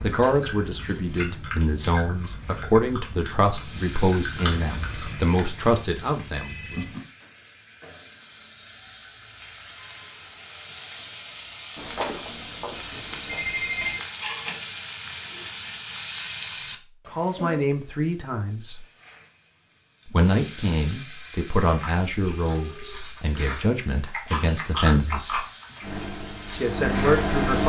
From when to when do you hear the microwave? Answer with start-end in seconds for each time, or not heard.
25.8-27.6.